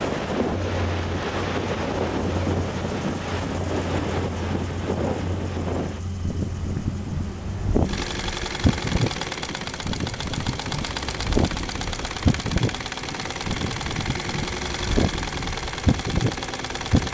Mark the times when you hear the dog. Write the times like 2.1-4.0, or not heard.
not heard.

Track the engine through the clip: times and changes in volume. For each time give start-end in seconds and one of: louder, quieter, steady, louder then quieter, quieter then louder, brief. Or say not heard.
0.0-17.0 louder.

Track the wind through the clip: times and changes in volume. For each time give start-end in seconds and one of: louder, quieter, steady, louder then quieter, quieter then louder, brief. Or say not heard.
0.0-17.0 steady.